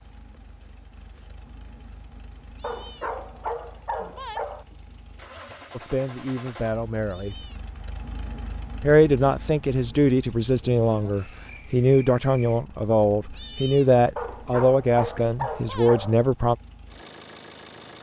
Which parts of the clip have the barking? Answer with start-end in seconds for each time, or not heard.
2.6-4.7, 14.2-16.1.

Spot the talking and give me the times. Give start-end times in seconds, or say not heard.
5.7-7.5, 8.8-16.6.